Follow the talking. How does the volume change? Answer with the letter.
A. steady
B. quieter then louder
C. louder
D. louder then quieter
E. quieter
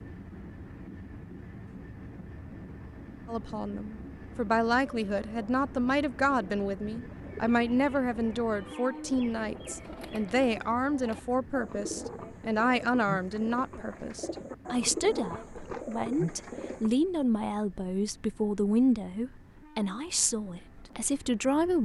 A.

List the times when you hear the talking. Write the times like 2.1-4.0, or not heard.
3.2-21.8.